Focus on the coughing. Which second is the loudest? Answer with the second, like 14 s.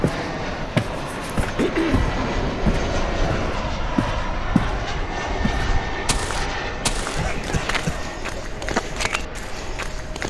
2 s.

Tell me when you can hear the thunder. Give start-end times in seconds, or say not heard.
2.0-3.6.